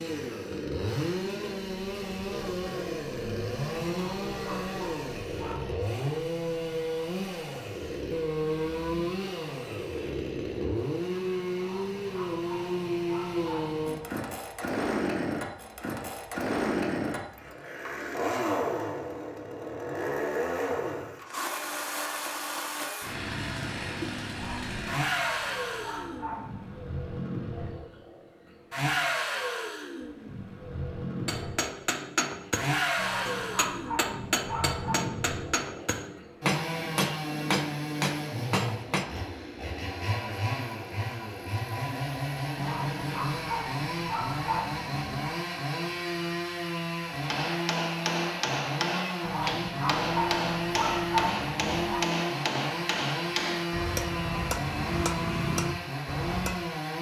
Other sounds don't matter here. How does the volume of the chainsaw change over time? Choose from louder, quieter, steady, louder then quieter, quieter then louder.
steady.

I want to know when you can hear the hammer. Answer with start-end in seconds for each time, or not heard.
31.2-39.1, 47.1-56.6.